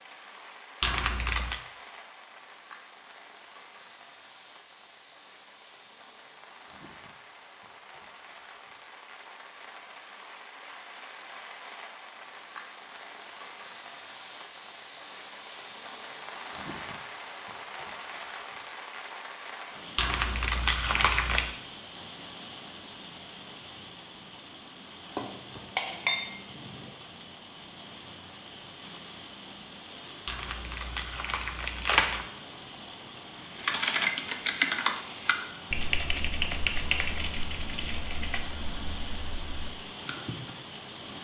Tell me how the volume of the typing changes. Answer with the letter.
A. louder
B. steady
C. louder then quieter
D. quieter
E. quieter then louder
D.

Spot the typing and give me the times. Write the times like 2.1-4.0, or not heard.
33.5-40.5.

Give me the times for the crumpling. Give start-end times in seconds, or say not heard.
0.8-1.6, 19.9-21.6, 30.2-32.2.